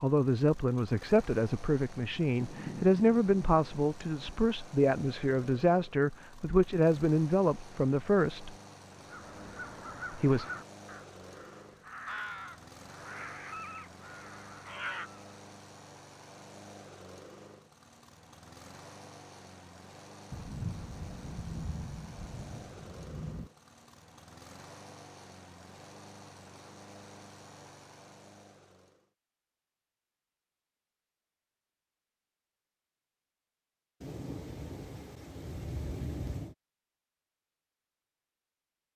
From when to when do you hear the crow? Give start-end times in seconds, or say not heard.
8.9-15.2.